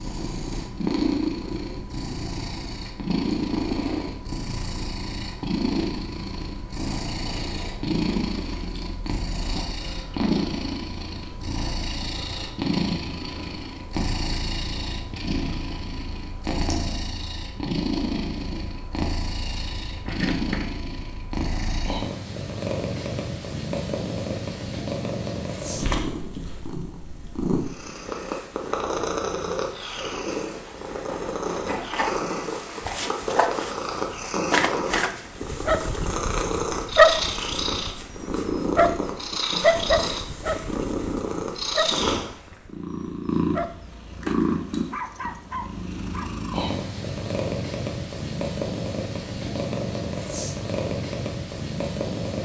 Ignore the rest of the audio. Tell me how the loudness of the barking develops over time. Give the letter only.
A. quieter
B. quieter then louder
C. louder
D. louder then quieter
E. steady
A.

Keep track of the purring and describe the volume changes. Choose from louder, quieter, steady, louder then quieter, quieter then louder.
steady.